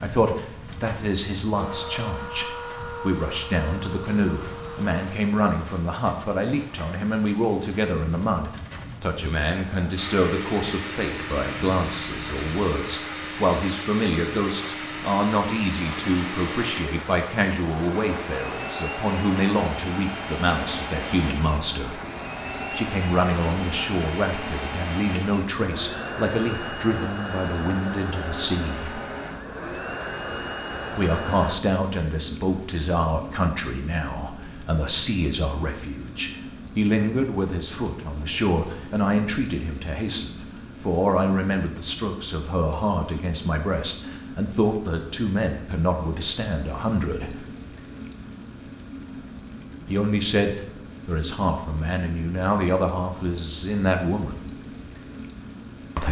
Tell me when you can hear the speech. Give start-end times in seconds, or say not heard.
0.0-22.0, 22.7-29.0, 30.9-47.5, 49.9-54.4.